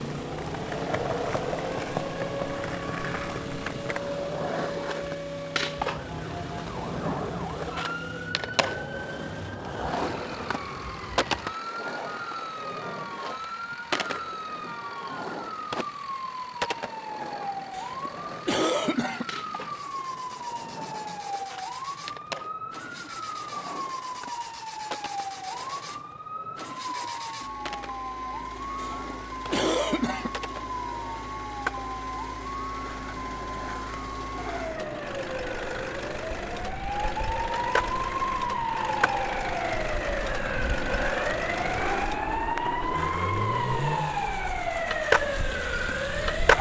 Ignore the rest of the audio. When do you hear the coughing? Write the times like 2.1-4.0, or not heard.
17.7-19.2, 28.8-30.3.